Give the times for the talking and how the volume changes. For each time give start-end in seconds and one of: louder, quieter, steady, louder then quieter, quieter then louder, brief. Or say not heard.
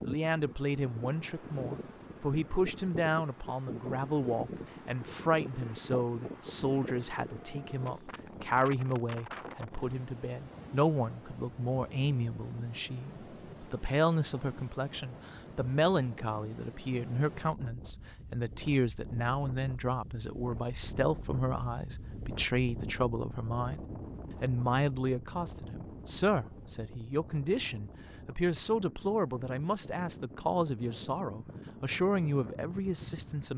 0.0-33.5 steady.